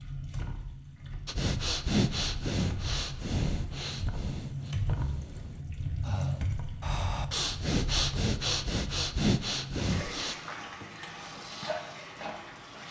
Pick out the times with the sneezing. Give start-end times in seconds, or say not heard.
not heard.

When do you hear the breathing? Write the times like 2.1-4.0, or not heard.
1.2-10.3.